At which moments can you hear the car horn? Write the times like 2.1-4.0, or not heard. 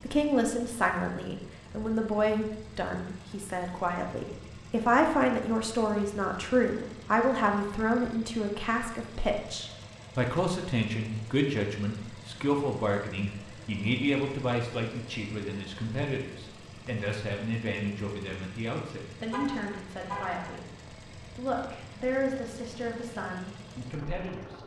19.3-20.6.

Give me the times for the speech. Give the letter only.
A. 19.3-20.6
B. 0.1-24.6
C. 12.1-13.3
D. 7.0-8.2
B.